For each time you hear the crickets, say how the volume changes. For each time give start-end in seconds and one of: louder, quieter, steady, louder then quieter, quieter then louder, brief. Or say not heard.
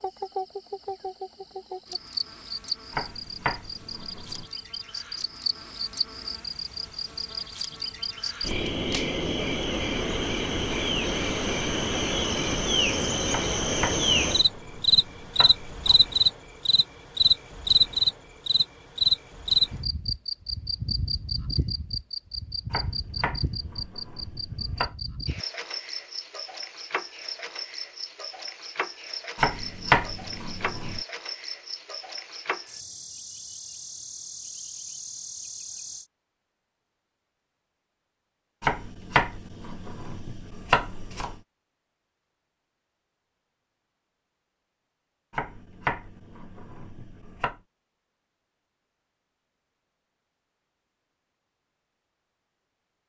0.0-36.0 louder then quieter.